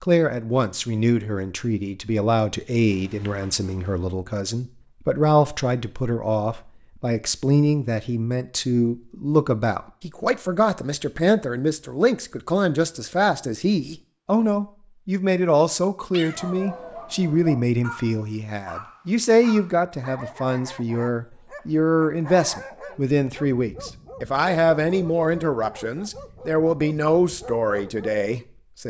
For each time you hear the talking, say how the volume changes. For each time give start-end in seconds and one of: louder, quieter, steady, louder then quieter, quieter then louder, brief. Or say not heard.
0.0-28.8 steady.